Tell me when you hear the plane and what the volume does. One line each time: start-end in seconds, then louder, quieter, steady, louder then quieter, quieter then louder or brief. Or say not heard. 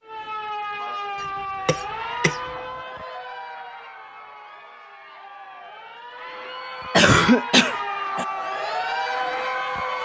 not heard.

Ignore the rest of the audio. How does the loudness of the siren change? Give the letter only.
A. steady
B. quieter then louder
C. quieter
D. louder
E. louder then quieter
B.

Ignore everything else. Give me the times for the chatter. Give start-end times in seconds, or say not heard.
1.8-10.0.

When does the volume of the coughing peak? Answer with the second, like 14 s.
7 s.